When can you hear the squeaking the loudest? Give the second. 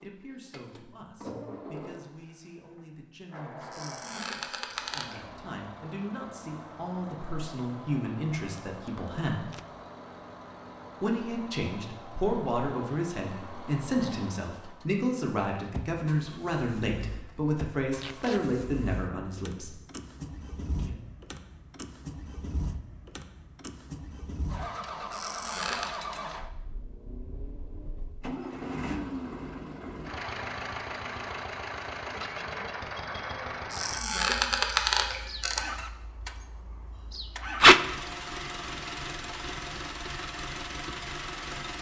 35 s.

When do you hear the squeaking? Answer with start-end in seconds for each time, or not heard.
3.7-5.2, 25.1-26.0, 33.7-35.6.